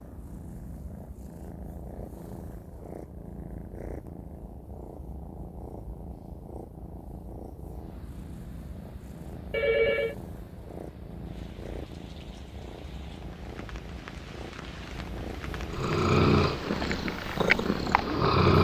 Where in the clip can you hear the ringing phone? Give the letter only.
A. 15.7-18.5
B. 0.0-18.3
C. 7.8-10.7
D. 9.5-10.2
D.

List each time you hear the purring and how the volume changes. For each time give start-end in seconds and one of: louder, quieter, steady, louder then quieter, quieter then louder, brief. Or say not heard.
0.0-18.3 louder.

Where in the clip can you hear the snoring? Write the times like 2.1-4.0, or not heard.
15.7-18.5.